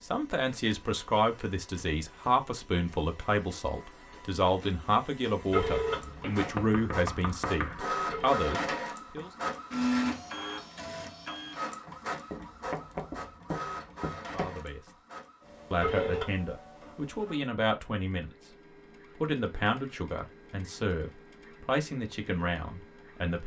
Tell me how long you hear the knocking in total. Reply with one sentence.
You can hear the knocking for 4 seconds altogether.